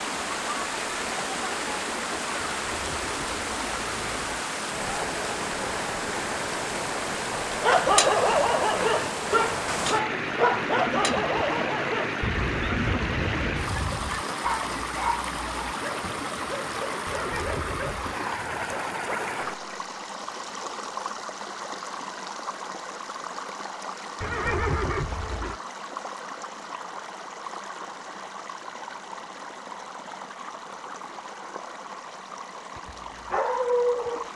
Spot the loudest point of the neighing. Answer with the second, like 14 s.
25 s.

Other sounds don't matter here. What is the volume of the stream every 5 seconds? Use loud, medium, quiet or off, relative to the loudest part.
loud, loud, loud, loud, medium, medium, medium.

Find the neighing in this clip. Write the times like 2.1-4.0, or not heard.
2.5-4.3, 17.1-18.1, 24.2-25.6.